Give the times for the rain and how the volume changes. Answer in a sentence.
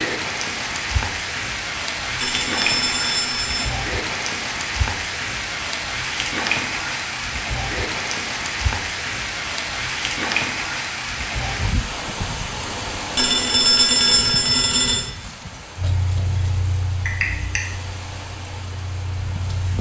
You can hear the rain from 0.0 to 19.7 s, getting quieter.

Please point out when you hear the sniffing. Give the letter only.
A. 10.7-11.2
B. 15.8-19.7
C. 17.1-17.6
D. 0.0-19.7
C.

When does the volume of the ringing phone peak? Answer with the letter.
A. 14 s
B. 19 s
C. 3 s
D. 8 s
A.